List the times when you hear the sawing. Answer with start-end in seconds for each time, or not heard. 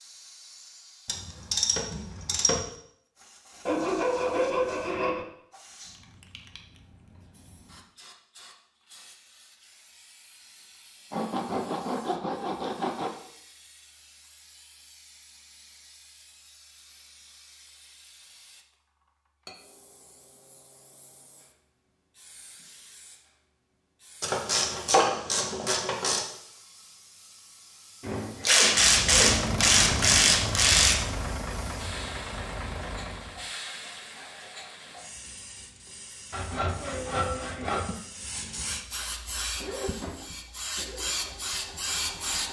3.6-5.2, 11.1-13.1, 28.0-29.5, 36.3-38.0.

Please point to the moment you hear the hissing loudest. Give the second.
42 s.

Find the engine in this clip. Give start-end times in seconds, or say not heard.
28.6-33.5, 39.0-42.4.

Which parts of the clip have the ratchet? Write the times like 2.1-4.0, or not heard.
1.1-2.6, 24.2-26.2, 28.4-31.0.